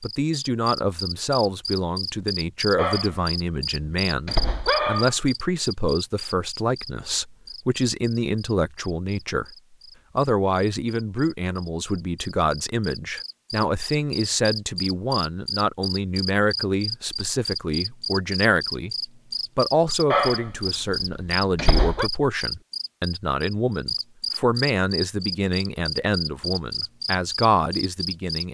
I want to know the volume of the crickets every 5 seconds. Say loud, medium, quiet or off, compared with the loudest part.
loud, medium, medium, loud, loud, loud.